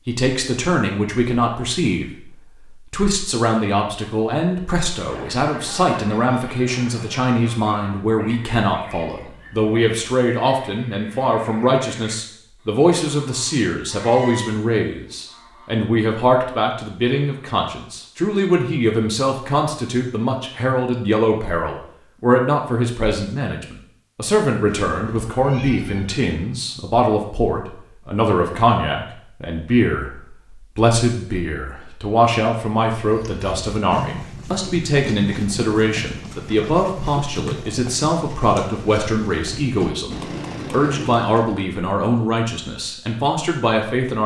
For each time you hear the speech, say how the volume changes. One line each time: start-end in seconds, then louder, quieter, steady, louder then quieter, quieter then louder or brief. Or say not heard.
0.1-44.2 steady.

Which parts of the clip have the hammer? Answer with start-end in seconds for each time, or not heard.
not heard.